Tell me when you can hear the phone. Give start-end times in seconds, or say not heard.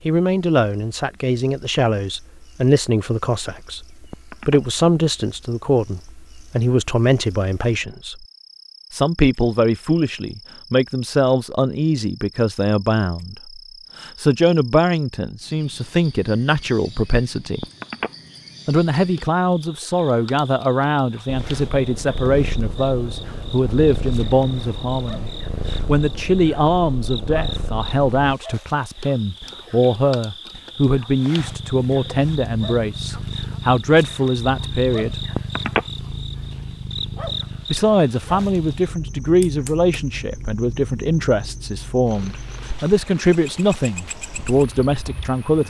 4.1-4.6, 17.6-18.1, 35.4-35.9.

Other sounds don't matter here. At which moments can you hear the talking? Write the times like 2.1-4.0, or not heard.
0.1-8.2, 8.9-17.6, 18.6-35.1, 37.7-45.6.